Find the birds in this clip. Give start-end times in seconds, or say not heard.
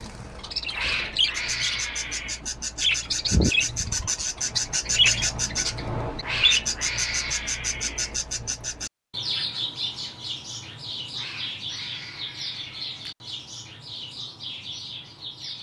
0.0-15.5.